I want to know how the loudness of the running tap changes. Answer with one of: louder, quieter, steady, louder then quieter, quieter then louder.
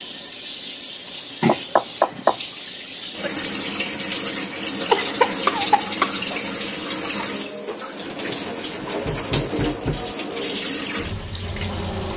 steady.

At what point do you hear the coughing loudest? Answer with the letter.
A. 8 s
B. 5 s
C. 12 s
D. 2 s
B.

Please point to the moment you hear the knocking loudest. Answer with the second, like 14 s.
2 s.